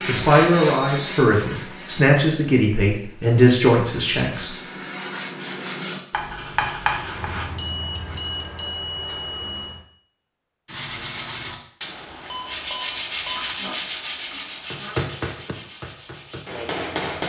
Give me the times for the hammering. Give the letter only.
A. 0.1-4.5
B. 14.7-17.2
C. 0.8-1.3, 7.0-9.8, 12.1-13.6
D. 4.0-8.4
B.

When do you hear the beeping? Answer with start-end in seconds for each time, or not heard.
0.8-1.3, 7.0-9.8, 12.1-13.6.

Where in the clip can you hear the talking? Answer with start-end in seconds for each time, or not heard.
0.1-4.5.